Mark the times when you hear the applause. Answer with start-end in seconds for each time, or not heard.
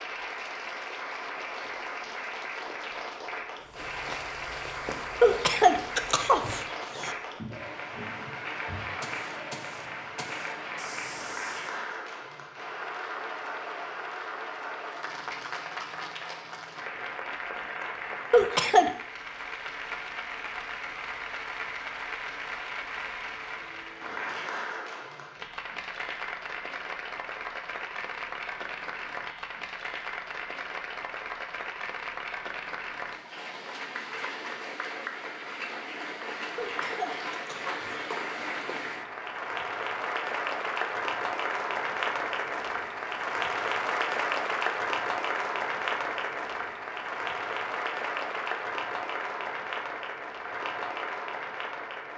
0.0-52.1.